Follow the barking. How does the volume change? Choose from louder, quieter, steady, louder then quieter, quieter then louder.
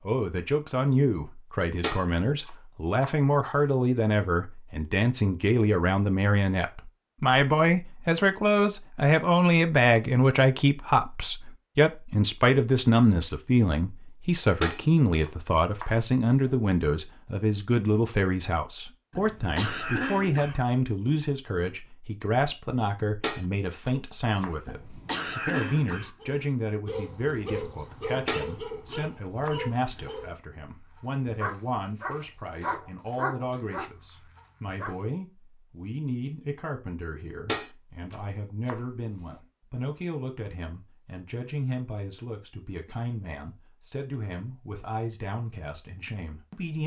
quieter then louder.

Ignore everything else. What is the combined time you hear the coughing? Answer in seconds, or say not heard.
3 s.